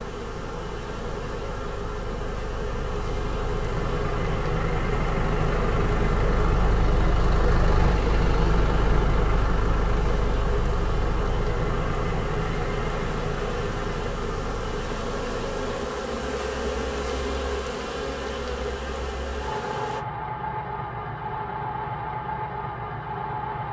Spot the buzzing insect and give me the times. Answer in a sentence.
You can hear the buzzing insect from 0.0 to 20.1 s.